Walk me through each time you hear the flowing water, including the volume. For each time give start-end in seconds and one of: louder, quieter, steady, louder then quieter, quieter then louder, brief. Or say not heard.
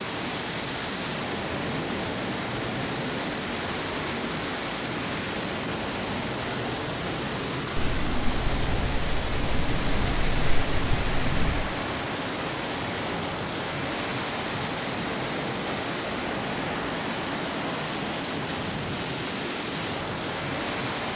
0.0-21.1 steady.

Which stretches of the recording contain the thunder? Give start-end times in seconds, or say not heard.
7.8-11.7.